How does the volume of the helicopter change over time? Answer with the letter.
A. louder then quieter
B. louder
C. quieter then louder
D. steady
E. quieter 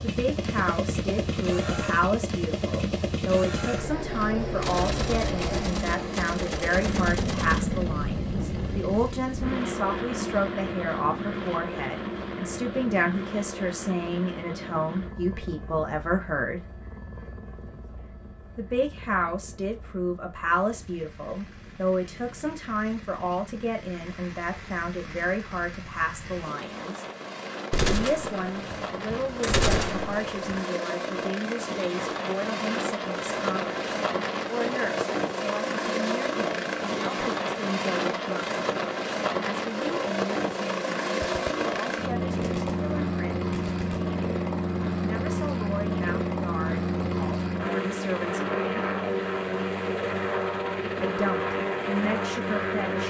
C.